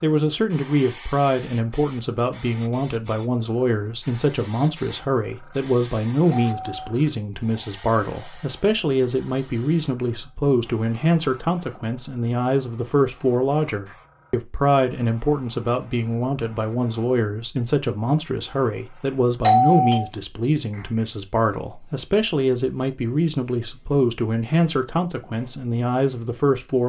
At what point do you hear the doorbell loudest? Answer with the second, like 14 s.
20 s.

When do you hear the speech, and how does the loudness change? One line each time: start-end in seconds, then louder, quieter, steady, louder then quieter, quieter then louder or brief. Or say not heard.
0.0-26.8 steady.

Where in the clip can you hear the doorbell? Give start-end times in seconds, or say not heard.
6.3-7.0, 19.4-20.1.